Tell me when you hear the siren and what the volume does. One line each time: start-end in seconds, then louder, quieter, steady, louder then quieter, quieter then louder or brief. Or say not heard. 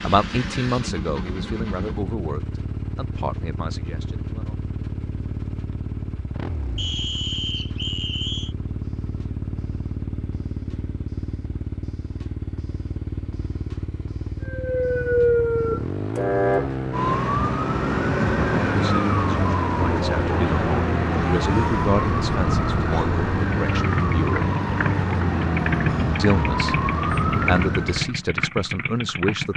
14.4-28.1 steady.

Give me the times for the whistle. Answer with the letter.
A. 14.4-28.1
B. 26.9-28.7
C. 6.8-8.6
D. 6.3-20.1
C.